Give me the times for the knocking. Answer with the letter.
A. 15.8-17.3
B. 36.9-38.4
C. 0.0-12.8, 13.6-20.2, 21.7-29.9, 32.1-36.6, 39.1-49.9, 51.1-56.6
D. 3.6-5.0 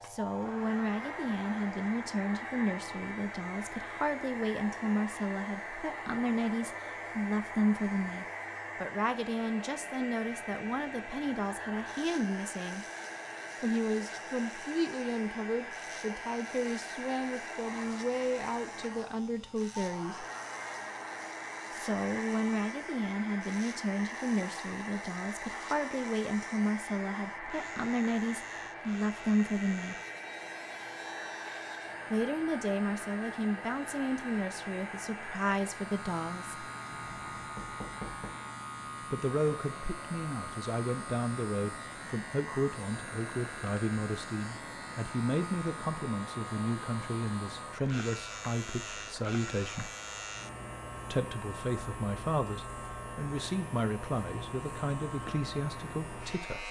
B.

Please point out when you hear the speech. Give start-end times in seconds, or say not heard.
0.0-12.8, 13.6-20.2, 21.7-29.9, 32.1-36.6, 39.1-49.9, 51.1-56.6.